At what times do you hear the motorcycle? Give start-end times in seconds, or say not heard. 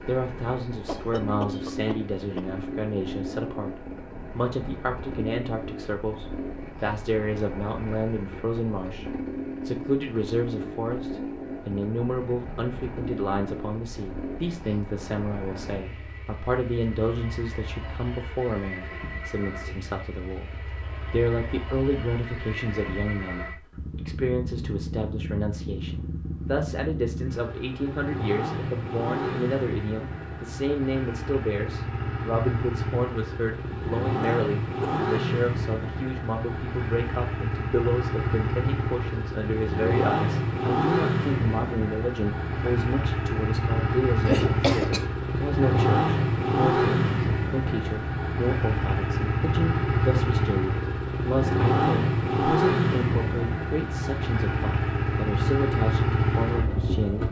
0.0-57.2.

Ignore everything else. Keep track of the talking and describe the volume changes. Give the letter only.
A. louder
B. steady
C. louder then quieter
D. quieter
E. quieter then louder
B.